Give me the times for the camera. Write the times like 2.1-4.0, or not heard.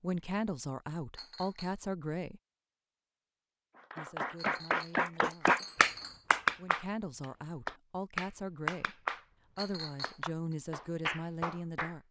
not heard.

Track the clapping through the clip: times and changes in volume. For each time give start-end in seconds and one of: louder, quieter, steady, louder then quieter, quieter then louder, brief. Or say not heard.
3.8-12.0 quieter.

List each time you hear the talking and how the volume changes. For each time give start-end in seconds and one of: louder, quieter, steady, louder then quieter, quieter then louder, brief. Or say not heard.
0.0-2.4 brief
4.0-5.7 brief
6.5-12.0 steady.